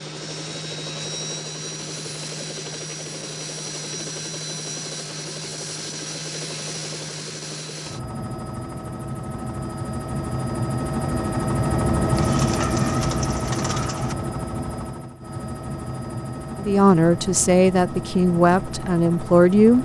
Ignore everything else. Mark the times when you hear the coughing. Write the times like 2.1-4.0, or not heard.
not heard.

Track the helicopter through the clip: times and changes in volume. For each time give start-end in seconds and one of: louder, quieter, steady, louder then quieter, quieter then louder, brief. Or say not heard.
0.0-19.8 louder then quieter.